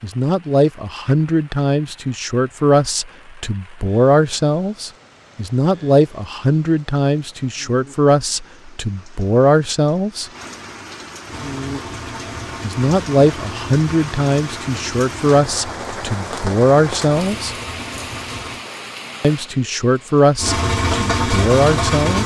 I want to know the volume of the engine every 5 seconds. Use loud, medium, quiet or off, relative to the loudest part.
off, off, quiet, quiet, loud.